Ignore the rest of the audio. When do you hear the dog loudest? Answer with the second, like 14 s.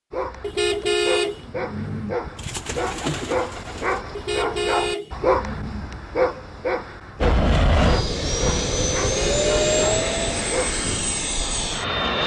5 s.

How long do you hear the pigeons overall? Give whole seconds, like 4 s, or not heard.
2 s.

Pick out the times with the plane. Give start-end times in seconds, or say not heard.
7.2-12.2.